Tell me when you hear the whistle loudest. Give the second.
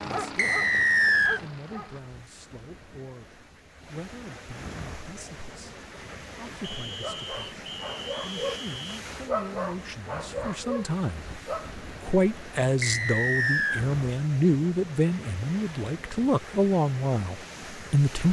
1 s.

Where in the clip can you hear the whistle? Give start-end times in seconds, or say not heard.
0.3-1.4, 6.6-9.0, 12.8-13.8.